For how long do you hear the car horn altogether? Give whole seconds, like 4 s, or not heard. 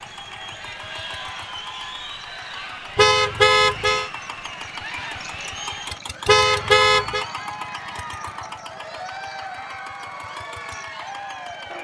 2 s.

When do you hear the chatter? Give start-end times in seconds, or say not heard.
0.0-11.7.